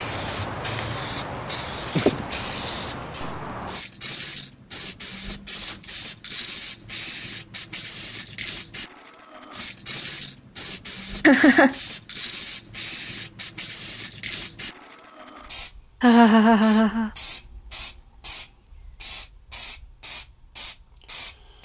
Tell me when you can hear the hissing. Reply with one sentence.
You can hear the hissing from 0.0 to 21.6 s.